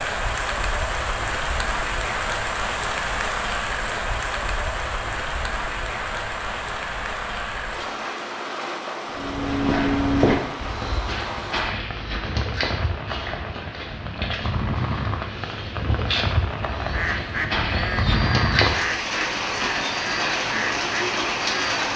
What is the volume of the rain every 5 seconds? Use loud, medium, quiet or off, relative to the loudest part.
loud, medium, medium, loud, loud.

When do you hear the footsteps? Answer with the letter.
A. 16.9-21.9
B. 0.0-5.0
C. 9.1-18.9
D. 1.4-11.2
C.